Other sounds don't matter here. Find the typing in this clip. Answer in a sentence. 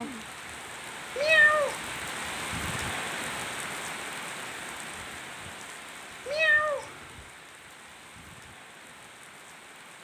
You can't hear the typing here.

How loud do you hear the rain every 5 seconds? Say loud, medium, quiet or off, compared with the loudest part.
loud, medium.